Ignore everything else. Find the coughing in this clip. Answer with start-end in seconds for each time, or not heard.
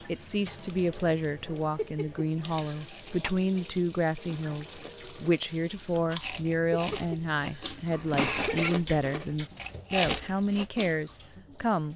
1.8-3.3, 6.7-8.7.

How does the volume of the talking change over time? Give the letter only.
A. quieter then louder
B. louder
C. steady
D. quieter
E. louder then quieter
C.